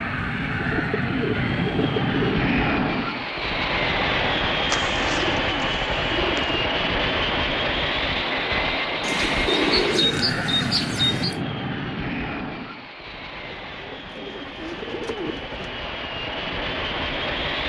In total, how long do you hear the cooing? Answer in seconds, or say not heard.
9 s.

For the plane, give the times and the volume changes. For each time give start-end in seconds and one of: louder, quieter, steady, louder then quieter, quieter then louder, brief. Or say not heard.
0.0-17.6 quieter.